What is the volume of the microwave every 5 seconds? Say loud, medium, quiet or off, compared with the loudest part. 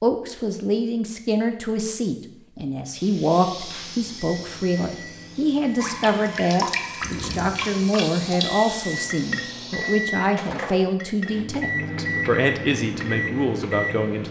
quiet, medium, loud.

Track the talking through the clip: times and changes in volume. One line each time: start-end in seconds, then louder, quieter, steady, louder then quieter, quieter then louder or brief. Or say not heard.
0.0-14.2 steady.